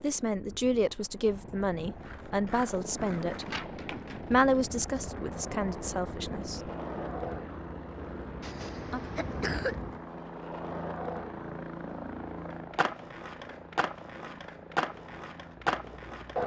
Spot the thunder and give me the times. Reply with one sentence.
You can't hear the thunder here.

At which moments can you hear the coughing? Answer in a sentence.
The coughing can be heard from 8.4 to 9.8 s.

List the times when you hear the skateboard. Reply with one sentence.
You can hear the skateboard from 2.0 to 16.4 s.